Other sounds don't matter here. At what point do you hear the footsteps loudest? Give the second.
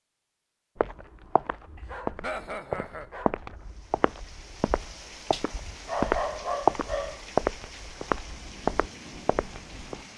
7 s.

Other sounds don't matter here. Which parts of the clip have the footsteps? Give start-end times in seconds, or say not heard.
0.8-10.0.